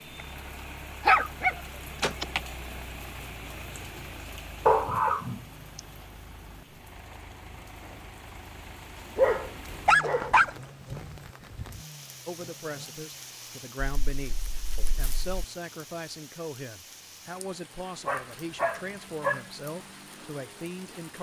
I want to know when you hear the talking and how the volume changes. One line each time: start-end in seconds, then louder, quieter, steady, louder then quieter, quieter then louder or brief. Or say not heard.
12.2-21.1 steady.